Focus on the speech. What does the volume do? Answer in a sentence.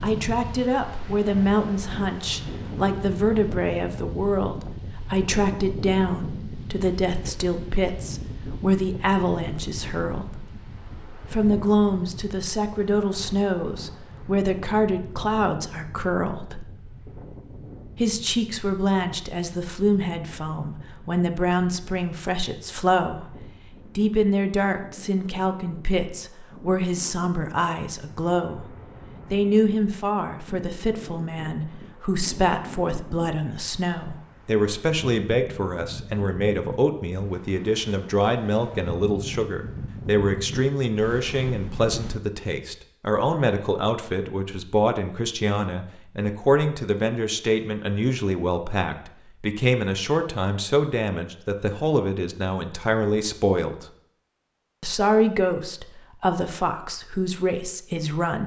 The volume of the speech stays about the same.